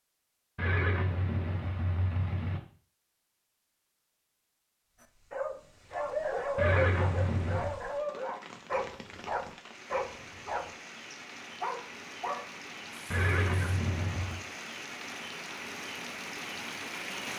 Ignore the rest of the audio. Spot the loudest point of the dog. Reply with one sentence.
The loudest moment of the dog is at 7 seconds.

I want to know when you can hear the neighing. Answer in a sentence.
The neighing can be heard from 0.6 to 2.6 s, from 6.5 to 7.8 s and from 13.1 to 14.4 s.